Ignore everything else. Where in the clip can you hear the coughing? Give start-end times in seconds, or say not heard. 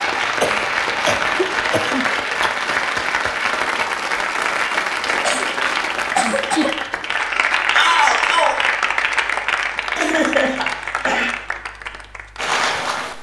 0.4-2.5, 5.2-6.8, 9.9-11.3.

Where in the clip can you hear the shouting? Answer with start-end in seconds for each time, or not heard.
7.7-8.7.